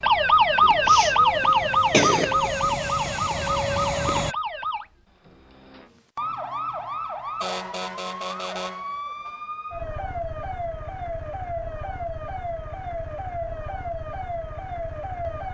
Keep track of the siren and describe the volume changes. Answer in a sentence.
The loudness of the siren goes down.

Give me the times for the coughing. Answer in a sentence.
The coughing can be heard from 0.6 to 2.5 s.